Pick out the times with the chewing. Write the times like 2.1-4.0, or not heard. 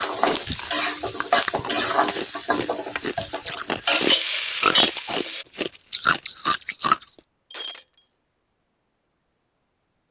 0.2-7.1.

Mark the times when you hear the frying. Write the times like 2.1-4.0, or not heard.
0.0-5.5.